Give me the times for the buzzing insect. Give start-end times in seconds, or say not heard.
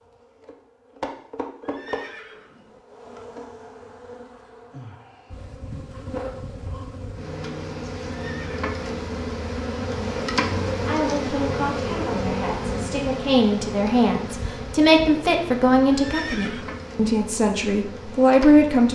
0.0-18.9.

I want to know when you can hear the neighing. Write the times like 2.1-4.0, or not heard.
1.6-2.8, 8.2-8.7, 15.9-16.9.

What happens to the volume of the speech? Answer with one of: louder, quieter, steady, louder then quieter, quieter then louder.
louder.